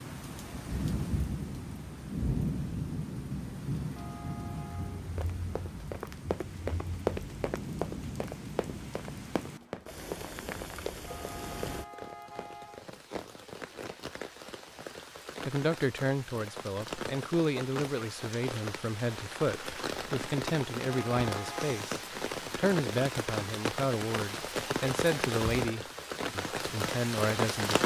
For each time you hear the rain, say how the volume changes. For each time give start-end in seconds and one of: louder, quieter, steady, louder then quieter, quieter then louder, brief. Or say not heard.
0.0-27.8 quieter then louder.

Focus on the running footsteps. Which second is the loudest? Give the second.
7 s.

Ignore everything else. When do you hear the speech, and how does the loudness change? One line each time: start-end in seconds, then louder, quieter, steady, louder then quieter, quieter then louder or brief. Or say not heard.
15.4-27.8 steady.